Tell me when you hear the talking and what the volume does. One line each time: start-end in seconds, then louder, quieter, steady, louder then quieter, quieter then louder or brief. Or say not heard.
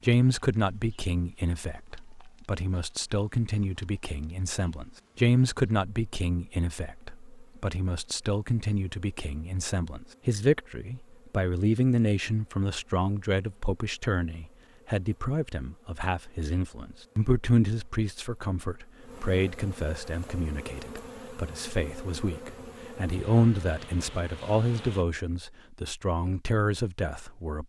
0.0-27.6 steady.